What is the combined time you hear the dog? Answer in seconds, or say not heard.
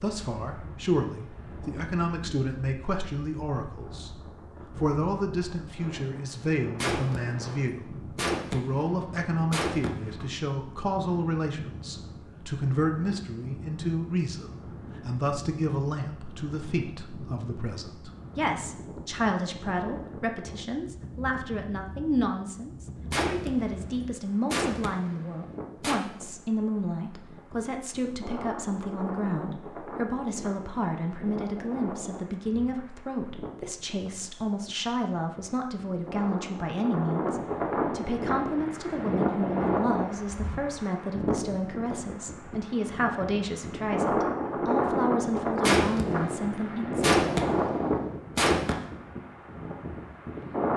not heard.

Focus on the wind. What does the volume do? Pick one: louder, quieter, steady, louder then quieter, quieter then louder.
louder.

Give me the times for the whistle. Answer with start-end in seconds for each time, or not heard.
not heard.